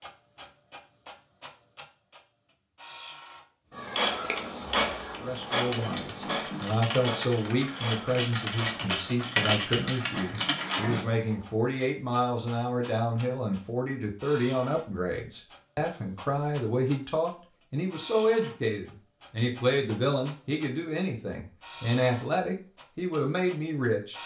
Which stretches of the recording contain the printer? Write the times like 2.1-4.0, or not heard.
0.0-24.2.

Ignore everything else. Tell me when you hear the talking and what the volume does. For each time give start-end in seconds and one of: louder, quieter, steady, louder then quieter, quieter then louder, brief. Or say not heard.
5.2-24.1 steady.